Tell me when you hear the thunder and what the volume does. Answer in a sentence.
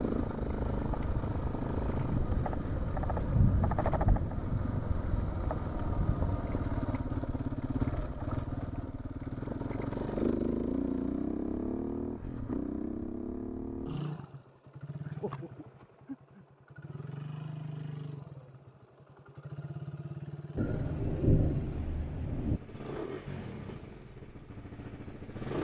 The thunder can be heard from 1.9 to 6.5 s, getting louder then quieter; and briefly from 20.6 to 22.6 s.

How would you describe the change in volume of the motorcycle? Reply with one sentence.
The loudness of the motorcycle goes down.